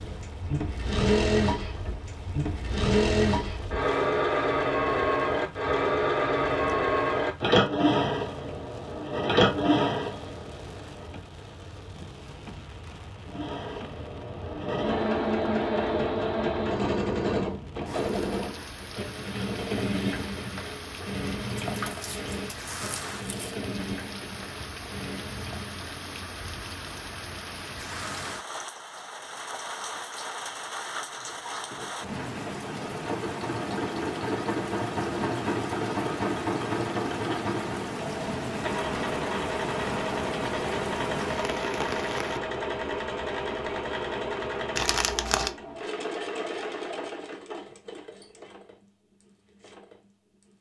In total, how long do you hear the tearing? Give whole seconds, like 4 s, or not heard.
3 s.